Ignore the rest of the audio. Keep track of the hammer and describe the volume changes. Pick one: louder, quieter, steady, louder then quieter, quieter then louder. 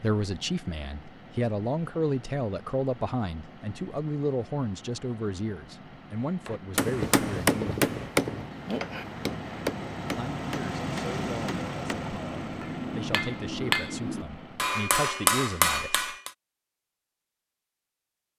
quieter then louder.